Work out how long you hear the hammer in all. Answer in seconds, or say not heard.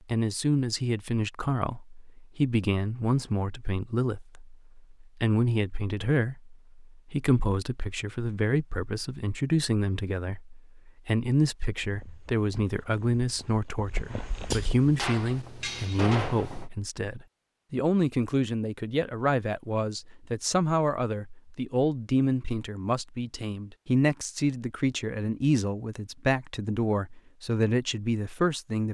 2 s.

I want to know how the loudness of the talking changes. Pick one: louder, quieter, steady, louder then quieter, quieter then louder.
steady.